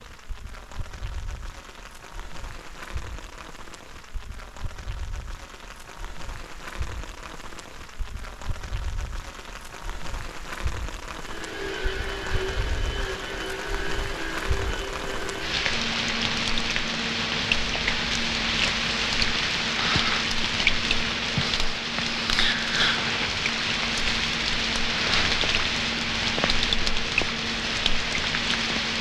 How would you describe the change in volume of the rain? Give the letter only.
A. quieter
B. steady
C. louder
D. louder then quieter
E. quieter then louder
C.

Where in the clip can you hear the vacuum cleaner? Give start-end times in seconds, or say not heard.
11.2-28.9.